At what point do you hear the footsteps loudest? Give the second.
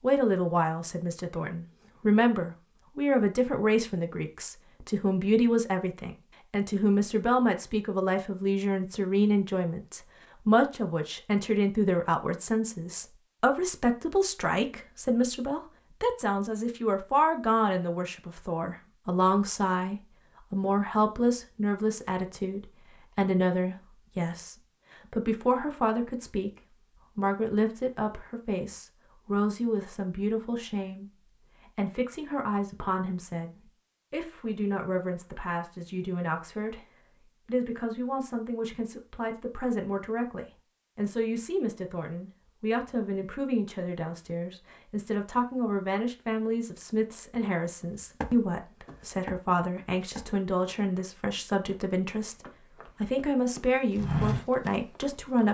54 s.